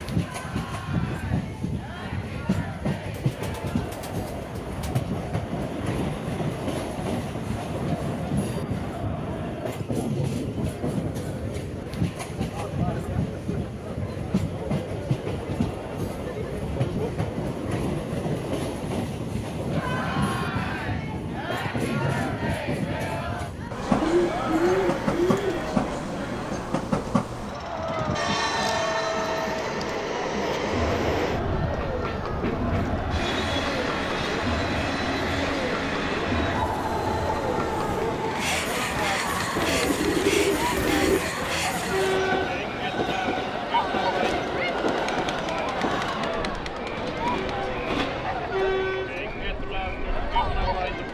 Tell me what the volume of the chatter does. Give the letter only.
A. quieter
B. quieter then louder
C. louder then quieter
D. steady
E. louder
E.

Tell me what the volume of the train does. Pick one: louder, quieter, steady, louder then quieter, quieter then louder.
steady.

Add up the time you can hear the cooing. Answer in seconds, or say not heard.
5 s.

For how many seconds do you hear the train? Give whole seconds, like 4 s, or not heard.
51 s.